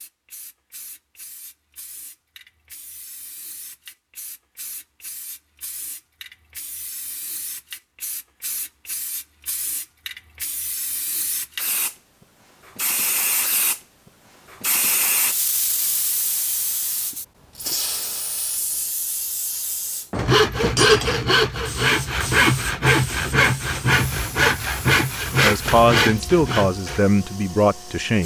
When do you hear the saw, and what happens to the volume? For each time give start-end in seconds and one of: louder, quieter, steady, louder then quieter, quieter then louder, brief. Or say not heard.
20.1-27.0 steady.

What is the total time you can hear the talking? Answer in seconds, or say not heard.
3 s.